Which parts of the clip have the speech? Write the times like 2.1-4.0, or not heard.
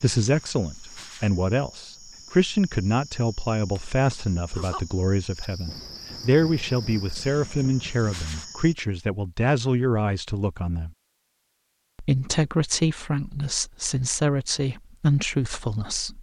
0.0-10.9, 11.9-16.1.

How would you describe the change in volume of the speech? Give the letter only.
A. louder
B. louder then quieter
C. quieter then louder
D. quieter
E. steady
E.